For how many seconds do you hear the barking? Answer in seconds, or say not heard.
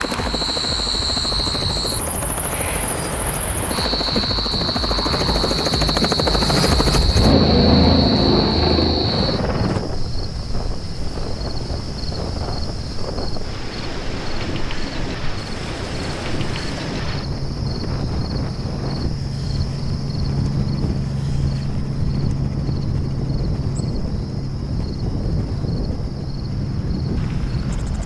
not heard.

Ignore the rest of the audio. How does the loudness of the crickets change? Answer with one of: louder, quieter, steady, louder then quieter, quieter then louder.
quieter.